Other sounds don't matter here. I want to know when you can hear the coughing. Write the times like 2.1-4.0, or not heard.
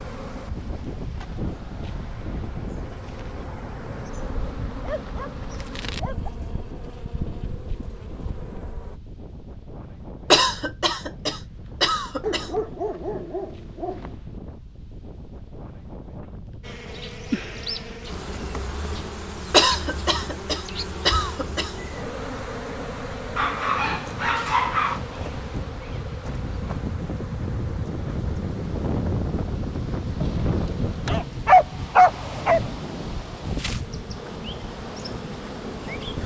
10.3-12.5, 19.5-21.8.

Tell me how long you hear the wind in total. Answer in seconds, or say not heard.
36 s.